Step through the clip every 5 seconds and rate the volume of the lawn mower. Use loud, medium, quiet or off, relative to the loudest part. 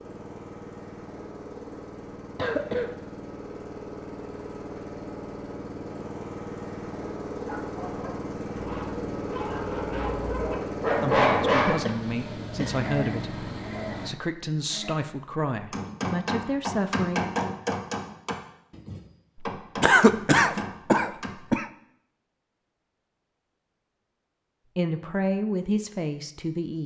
medium, loud, loud, off, off, off.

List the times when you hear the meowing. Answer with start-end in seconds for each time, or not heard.
not heard.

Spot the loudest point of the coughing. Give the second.
20 s.